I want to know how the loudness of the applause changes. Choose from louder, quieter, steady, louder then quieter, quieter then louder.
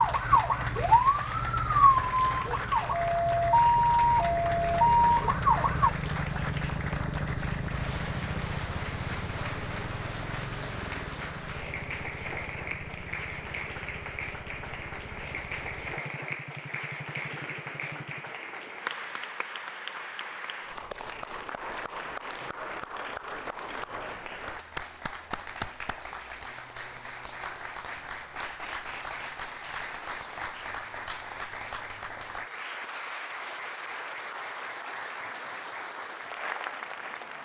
steady.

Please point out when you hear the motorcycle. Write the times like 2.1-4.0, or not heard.
0.0-18.4.